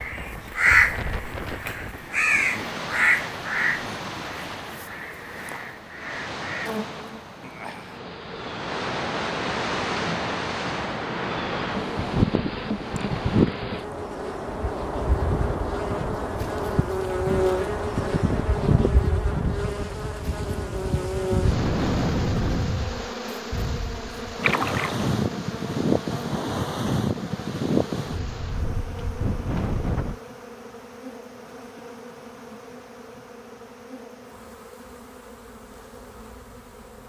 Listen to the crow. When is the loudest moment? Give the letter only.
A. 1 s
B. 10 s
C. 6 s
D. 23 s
A.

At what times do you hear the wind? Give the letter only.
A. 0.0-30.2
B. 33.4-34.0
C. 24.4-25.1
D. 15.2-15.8
A.